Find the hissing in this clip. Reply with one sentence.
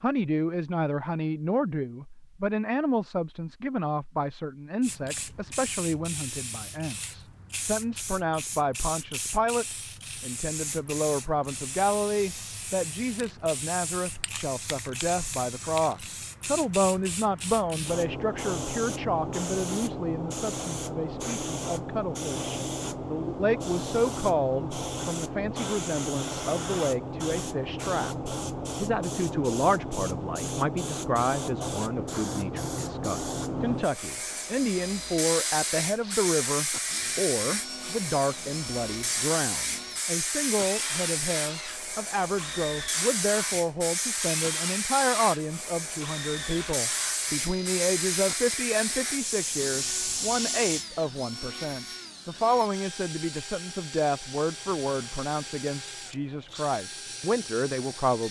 You can hear the hissing from 4.8 to 50.9 s.